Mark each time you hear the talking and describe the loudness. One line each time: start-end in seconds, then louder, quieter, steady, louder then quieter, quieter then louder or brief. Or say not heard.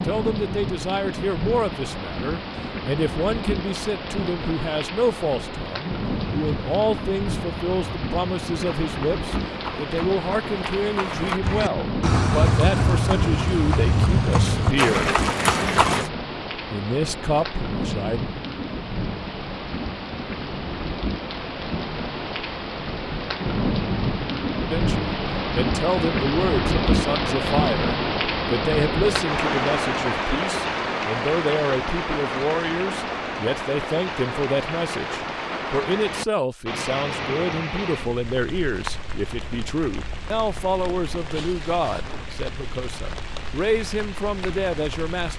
0.0-15.1 steady
16.7-18.2 brief
24.7-45.3 steady.